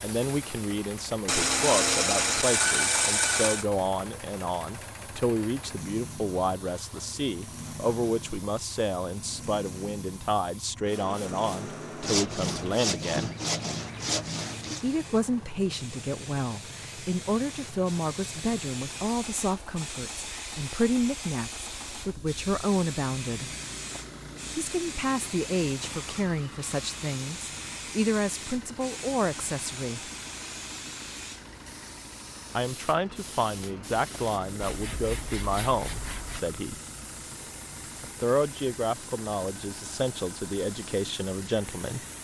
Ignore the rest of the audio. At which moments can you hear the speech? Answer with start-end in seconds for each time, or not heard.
0.0-13.3, 14.8-23.5, 24.6-30.0, 32.5-36.8, 38.0-42.0.